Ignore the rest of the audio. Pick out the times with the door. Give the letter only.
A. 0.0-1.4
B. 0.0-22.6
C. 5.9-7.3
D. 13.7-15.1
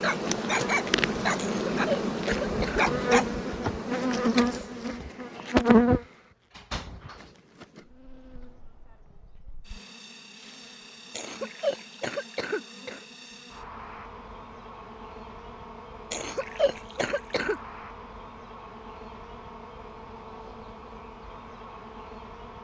C.